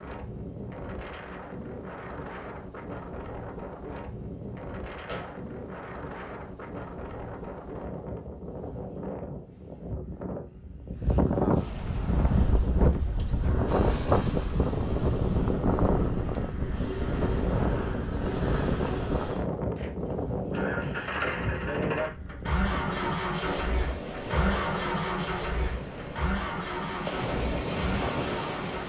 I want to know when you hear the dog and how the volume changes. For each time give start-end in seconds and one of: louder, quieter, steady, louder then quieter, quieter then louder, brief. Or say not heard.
not heard.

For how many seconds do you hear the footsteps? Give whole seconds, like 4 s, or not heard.
not heard.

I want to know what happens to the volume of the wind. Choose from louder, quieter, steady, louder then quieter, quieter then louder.
louder then quieter.